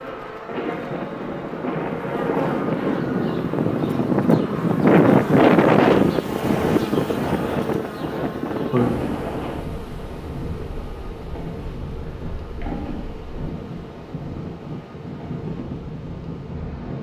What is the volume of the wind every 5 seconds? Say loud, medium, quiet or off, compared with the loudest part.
loud, loud, quiet, quiet.